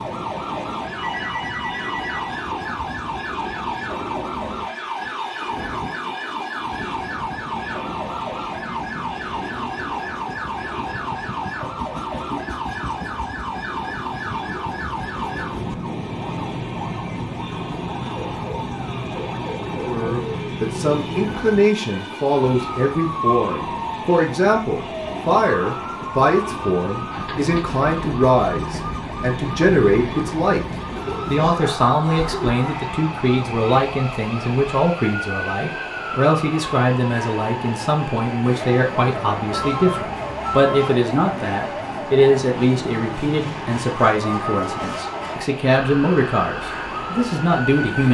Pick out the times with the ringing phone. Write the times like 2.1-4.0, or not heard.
0.9-2.3, 39.5-40.9.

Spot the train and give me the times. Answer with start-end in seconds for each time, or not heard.
0.0-48.0.